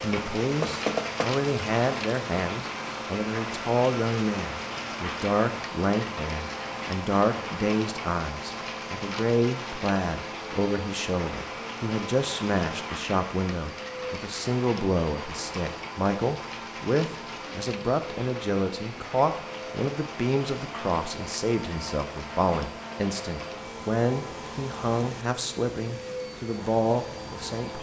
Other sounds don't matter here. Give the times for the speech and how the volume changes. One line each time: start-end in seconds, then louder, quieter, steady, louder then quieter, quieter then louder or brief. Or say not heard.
0.0-27.7 steady.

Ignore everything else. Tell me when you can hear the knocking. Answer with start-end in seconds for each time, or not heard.
0.6-1.4.